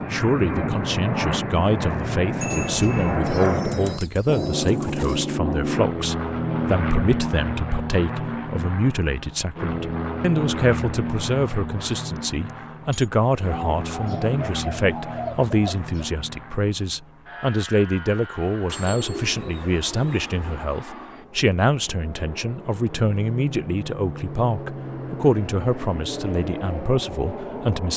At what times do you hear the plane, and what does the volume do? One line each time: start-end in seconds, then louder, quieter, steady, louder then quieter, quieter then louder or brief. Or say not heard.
0.0-27.9 quieter then louder.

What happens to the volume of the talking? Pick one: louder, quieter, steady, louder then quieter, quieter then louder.
steady.